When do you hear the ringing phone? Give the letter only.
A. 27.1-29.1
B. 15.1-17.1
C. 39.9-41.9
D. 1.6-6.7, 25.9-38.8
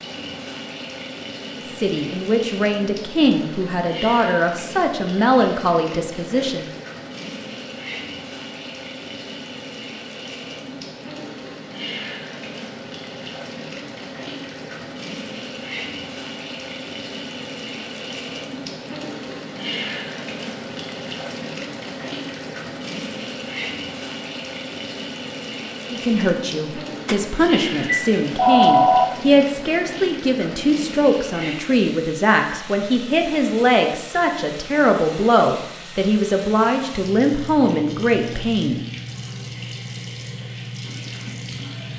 A.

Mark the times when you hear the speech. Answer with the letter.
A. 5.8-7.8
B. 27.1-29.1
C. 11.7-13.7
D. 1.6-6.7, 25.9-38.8
D.